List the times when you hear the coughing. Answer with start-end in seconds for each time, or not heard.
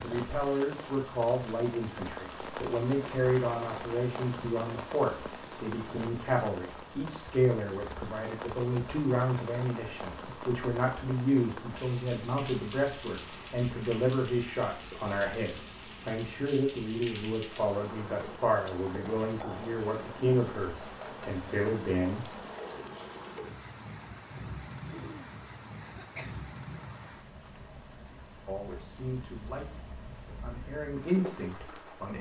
24.9-26.5.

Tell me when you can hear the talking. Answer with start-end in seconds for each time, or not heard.
0.0-22.3, 28.4-32.1.